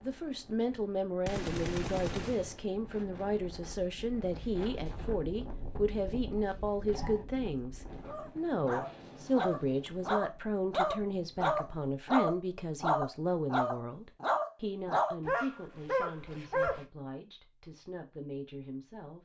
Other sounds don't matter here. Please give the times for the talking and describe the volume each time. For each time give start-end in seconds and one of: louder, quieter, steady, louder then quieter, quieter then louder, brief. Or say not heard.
0.0-19.2 quieter.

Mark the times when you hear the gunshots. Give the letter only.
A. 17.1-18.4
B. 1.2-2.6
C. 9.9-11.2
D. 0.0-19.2
B.